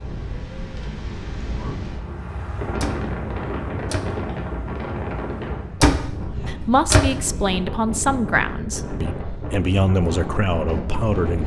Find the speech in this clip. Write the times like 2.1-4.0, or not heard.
6.5-11.4.